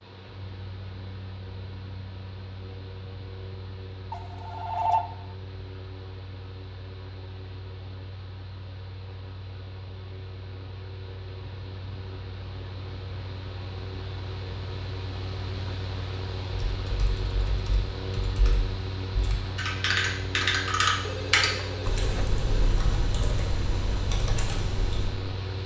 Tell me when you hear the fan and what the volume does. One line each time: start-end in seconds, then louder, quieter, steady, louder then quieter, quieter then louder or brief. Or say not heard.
0.0-25.6 louder.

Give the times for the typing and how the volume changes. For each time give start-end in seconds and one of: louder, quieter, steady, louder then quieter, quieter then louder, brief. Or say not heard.
16.5-25.1 louder then quieter.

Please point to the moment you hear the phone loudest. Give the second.
5 s.